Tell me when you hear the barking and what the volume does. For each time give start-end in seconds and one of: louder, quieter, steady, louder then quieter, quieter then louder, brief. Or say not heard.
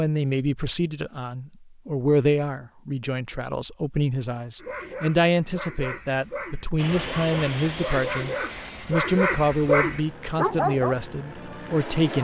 4.5-10.9 louder.